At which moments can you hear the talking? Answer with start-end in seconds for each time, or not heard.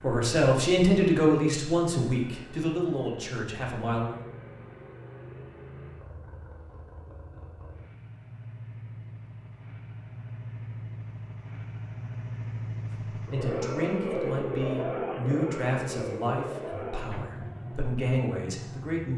0.0-4.2, 13.1-19.1.